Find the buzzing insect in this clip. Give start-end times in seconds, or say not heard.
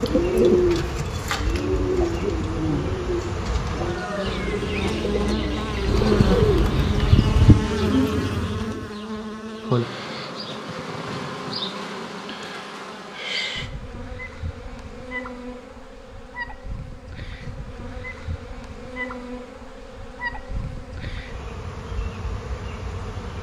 0.0-23.3.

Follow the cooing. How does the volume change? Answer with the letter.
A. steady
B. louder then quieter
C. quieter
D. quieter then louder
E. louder
D.